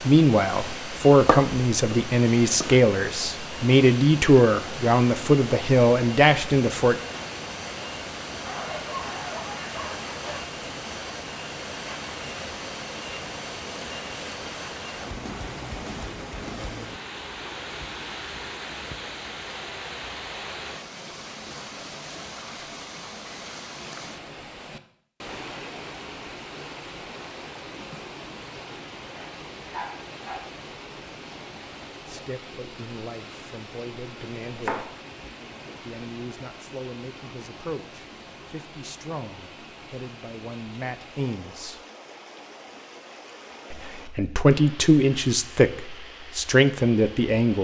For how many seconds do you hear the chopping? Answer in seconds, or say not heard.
3 s.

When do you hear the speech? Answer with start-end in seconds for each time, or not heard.
0.1-7.0, 32.0-34.9, 35.8-41.8, 43.7-47.5.